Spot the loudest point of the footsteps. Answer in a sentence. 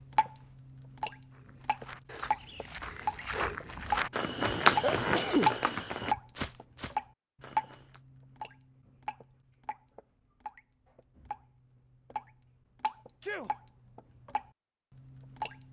The volume of the footsteps peaks at 5 seconds.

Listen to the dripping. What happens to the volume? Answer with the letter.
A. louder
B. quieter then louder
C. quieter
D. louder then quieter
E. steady
D.